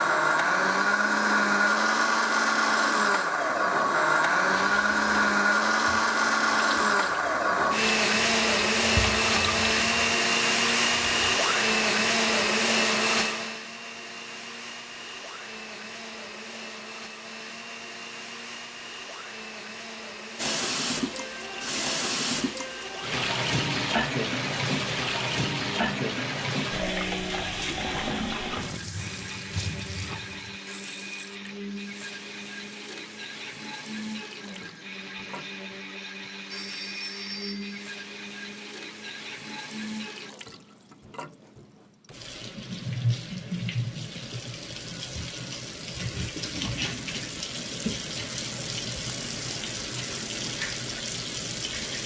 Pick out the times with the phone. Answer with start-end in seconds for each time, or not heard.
36.5-37.8.